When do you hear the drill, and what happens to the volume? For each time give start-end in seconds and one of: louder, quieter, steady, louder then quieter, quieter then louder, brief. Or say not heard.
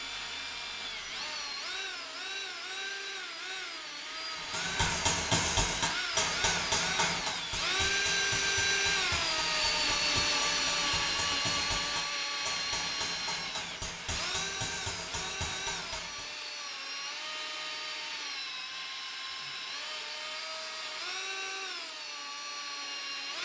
0.0-23.4 louder then quieter.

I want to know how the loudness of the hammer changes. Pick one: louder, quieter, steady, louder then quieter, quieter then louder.
quieter.